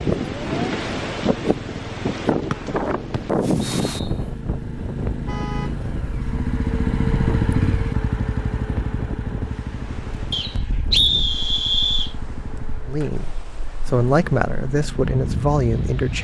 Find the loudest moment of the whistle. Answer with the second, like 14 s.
11 s.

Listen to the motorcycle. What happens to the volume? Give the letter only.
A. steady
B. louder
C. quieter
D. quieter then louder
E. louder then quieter
E.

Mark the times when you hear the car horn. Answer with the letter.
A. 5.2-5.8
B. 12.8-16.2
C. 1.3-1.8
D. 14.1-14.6
A.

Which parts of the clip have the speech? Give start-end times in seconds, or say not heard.
12.8-16.2.